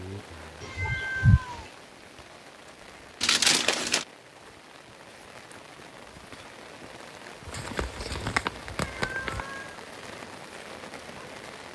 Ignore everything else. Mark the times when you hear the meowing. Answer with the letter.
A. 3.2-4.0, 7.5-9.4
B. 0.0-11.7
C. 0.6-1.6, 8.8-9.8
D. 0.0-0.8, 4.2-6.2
C.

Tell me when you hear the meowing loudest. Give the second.
1 s.